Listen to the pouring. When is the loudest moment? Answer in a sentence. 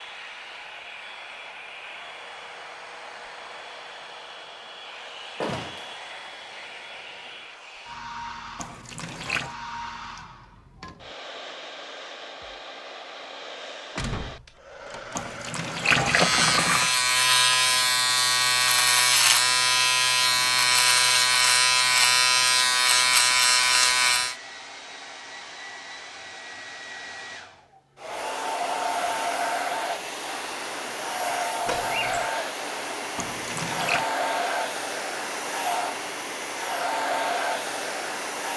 The loudest moment of the pouring is at 16 seconds.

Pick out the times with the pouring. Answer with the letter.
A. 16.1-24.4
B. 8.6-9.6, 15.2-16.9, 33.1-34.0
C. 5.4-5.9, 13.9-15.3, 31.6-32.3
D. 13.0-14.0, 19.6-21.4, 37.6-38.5
B.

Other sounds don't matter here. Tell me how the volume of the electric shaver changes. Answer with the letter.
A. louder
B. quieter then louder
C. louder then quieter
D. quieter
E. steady
E.